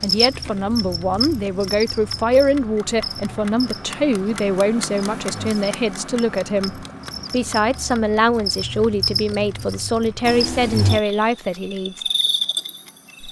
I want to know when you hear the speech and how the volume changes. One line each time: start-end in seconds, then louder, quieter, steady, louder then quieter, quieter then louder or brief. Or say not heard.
0.0-12.0 steady.